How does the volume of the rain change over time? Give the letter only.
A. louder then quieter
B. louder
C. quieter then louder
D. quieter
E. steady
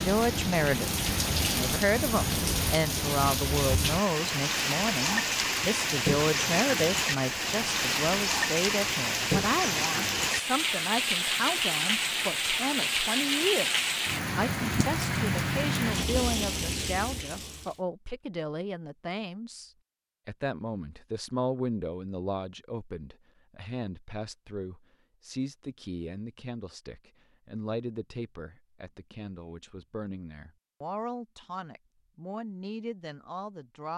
E.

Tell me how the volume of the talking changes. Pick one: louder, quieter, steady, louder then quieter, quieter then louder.
quieter.